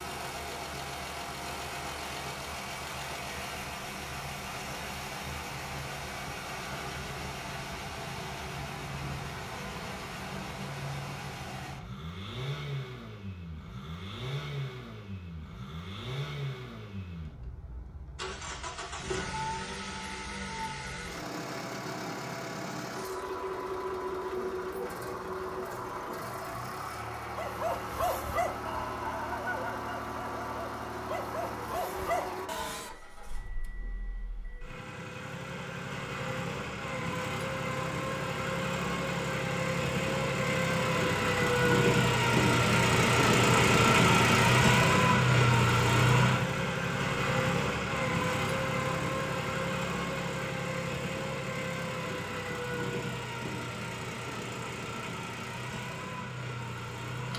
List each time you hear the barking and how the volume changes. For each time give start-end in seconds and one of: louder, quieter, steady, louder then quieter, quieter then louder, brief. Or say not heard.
27.4-33.0 quieter then louder.